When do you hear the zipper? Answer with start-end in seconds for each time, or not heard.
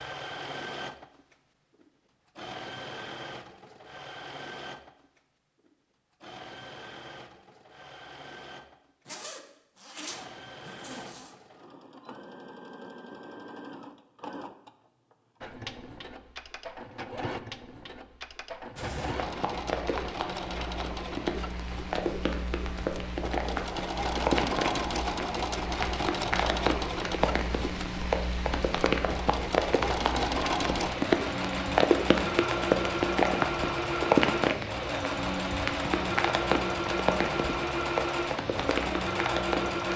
9.1-11.3.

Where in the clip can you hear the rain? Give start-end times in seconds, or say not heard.
18.8-39.9.